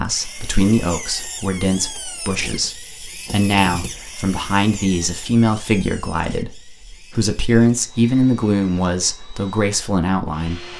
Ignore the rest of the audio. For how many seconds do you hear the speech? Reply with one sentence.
You can hear the speech for 11 seconds altogether.